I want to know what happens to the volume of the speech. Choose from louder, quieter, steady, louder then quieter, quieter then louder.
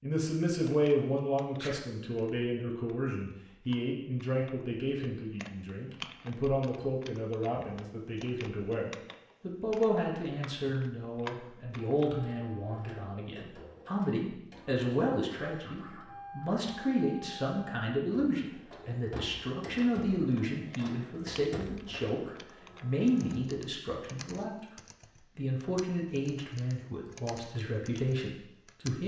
steady.